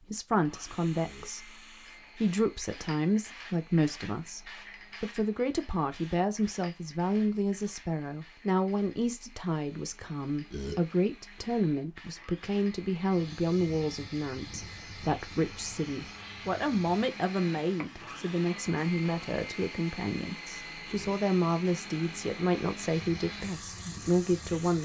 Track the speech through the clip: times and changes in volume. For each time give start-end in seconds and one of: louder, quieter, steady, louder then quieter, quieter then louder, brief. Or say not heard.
0.0-24.7 steady.